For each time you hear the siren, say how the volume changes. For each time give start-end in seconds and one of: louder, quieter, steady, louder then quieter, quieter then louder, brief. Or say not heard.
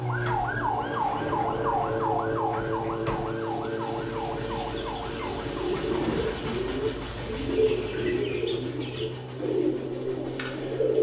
0.0-10.9 quieter.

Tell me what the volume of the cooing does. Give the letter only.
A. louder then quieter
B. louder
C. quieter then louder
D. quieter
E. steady
B.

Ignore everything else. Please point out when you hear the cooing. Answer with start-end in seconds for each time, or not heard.
0.1-10.9.